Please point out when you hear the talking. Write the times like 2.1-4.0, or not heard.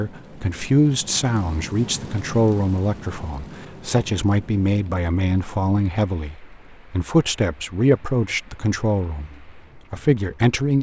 0.0-10.7.